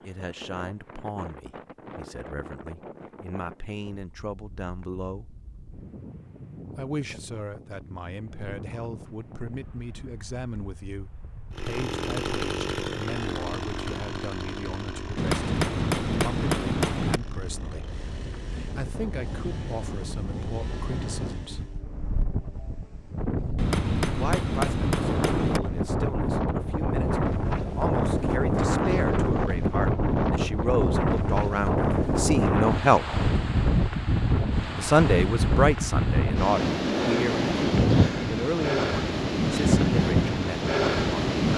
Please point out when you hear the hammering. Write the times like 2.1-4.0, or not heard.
15.2-17.2, 23.6-25.6.